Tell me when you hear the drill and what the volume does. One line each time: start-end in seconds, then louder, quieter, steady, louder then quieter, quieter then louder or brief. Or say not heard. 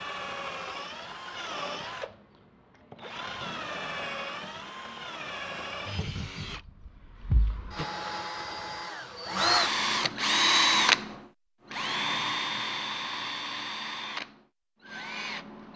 0.0-15.7 louder then quieter.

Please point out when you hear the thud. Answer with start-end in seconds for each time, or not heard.
7.3-7.7.